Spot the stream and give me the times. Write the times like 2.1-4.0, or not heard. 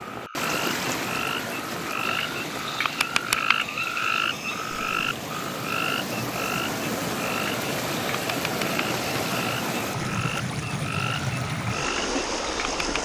0.0-13.0.